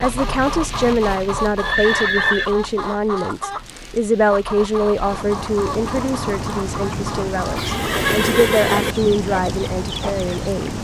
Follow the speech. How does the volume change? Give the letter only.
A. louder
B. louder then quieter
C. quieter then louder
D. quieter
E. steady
C.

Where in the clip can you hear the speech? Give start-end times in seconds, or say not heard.
0.0-10.7.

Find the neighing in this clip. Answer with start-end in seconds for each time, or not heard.
1.6-2.5, 7.5-8.9.